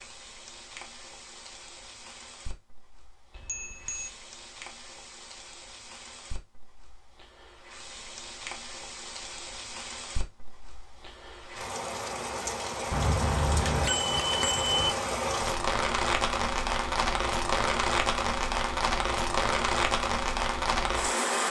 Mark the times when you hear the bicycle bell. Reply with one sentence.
The bicycle bell can be heard from 3.4 to 4.1 s and from 12.9 to 14.9 s.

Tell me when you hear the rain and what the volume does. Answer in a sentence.
The rain can be heard from 0.0 to 21.4 s, getting louder.